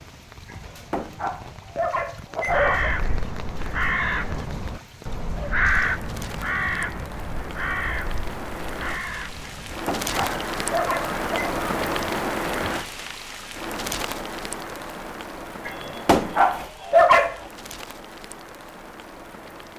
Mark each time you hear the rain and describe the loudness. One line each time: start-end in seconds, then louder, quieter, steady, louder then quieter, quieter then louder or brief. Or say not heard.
0.0-19.7 louder then quieter.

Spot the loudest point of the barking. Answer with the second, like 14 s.
17 s.